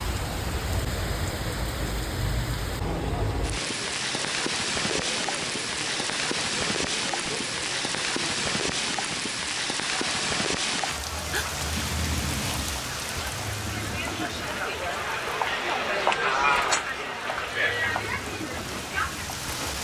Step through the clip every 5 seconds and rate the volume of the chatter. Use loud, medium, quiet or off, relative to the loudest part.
quiet, quiet, medium, loud.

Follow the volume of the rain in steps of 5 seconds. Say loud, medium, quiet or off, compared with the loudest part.
loud, loud, loud, medium.